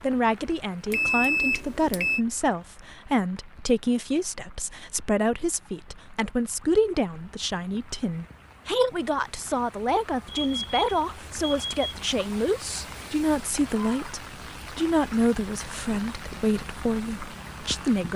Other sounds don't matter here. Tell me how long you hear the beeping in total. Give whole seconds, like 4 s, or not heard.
3 s.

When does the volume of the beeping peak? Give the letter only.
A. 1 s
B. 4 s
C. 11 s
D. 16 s
A.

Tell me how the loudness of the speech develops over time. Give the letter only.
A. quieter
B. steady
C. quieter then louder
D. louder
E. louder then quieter
B.